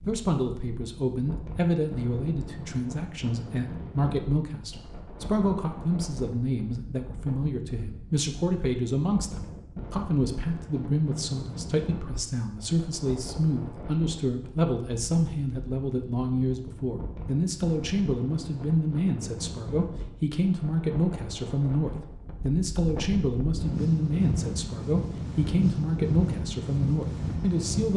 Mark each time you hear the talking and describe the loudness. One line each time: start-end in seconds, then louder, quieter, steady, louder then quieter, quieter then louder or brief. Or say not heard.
0.0-27.9 steady.